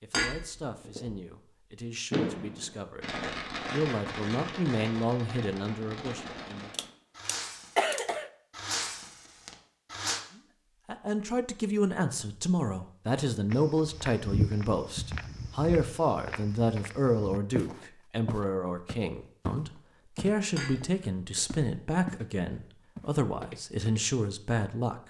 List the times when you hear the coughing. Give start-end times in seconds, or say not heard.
6.7-8.3.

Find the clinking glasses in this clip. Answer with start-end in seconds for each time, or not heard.
0.1-1.1, 20.6-21.6.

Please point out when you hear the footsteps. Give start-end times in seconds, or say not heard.
13.5-22.2, 22.9-24.1.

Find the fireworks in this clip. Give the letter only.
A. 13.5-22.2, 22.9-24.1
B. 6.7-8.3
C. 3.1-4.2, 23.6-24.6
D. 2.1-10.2
D.